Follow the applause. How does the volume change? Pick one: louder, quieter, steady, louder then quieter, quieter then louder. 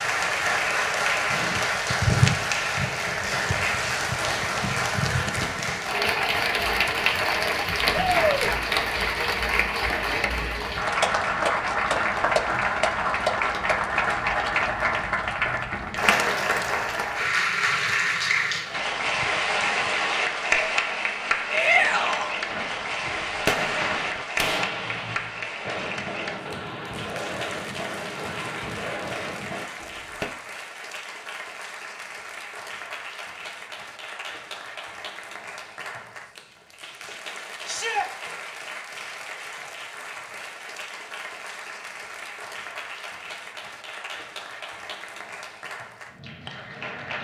quieter.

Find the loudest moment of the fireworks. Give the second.
24 s.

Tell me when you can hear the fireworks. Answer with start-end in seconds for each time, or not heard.
22.4-30.2.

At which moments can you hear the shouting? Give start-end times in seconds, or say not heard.
7.9-8.5, 21.5-22.4, 37.6-38.1.